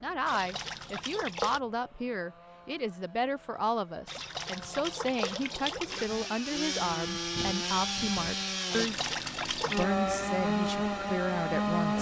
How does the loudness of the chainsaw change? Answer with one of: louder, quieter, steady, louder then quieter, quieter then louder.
louder.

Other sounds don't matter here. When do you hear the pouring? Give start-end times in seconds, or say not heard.
0.2-1.6, 4.0-6.0, 8.7-9.8.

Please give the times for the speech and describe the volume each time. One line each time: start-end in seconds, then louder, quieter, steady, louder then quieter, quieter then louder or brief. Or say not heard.
0.0-11.9 steady.